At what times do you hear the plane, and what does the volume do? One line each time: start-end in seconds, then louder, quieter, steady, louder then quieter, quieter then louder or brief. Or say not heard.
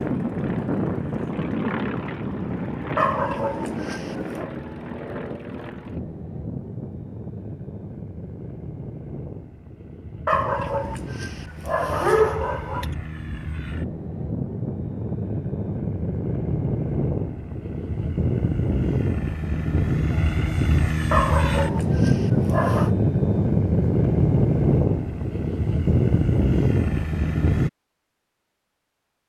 0.0-27.7 quieter then louder.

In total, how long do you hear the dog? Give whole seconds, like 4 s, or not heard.
6 s.